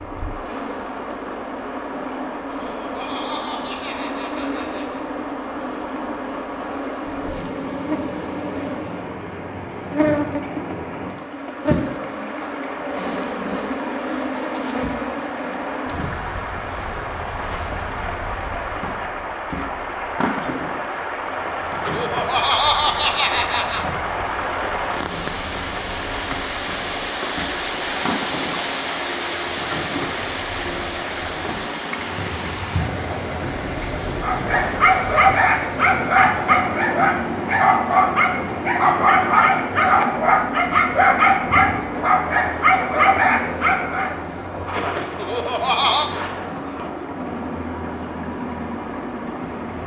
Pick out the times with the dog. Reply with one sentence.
You can hear the dog from 34.2 to 44.1 s.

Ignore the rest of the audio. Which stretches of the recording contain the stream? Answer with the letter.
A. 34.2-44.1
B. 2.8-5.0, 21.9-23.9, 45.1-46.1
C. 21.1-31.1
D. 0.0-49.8
D.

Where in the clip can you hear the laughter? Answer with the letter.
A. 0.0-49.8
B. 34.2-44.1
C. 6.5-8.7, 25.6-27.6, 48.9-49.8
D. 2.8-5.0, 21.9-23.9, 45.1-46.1
D.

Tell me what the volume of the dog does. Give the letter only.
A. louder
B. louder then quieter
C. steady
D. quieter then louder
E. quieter
C.